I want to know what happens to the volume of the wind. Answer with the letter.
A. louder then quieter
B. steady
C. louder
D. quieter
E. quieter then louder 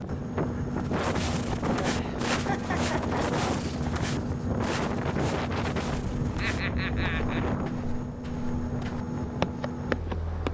D.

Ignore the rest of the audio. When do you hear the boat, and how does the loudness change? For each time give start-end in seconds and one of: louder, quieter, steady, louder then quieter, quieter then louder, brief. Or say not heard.
0.0-10.4 steady.